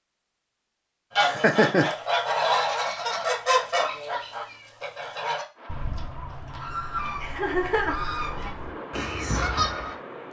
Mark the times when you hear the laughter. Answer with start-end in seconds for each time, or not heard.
1.2-1.9, 7.2-8.1.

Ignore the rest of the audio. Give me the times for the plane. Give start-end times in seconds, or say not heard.
5.5-10.2.